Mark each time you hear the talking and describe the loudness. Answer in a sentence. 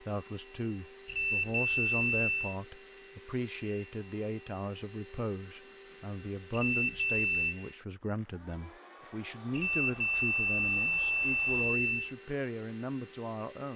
You can hear the talking from 0.0 to 13.7 s, at a steady volume.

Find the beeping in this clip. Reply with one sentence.
You can hear the beeping from 1.1 to 2.5 s, from 6.5 to 7.5 s and from 9.5 to 12.2 s.